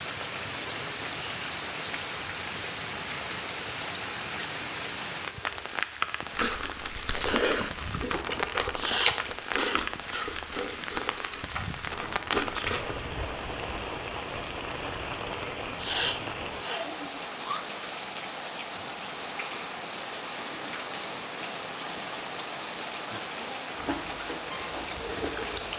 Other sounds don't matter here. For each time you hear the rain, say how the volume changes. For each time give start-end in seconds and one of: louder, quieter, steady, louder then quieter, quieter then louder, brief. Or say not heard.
0.0-25.7 steady.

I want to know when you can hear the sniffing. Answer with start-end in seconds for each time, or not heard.
8.8-9.8, 15.8-16.9.